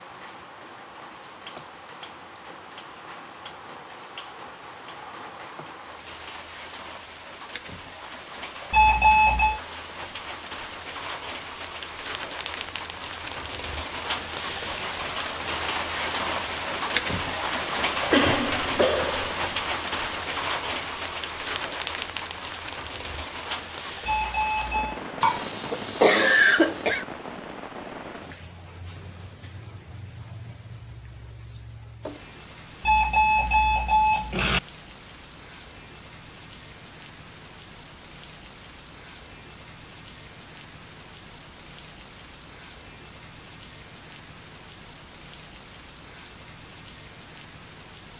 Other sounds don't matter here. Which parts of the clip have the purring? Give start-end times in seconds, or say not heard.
not heard.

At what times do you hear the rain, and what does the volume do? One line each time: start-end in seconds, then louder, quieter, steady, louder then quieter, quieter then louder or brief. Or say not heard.
0.0-48.1 louder then quieter.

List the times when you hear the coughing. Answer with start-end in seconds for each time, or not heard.
18.1-19.3, 25.2-27.1.